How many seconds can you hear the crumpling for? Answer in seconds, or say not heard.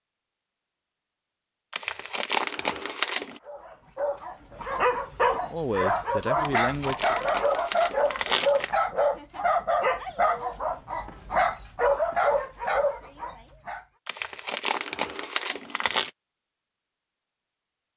6 s.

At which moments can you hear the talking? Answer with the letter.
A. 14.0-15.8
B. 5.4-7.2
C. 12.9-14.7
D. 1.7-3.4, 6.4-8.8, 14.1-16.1
B.